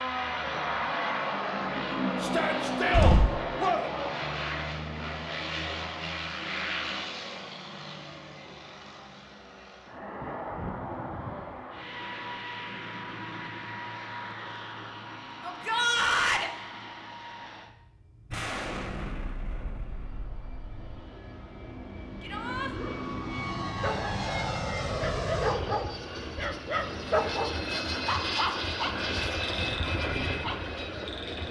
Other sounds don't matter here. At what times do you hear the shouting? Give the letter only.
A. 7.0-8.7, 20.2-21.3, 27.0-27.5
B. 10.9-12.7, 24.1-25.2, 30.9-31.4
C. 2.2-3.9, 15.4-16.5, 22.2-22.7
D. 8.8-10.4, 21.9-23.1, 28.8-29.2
C.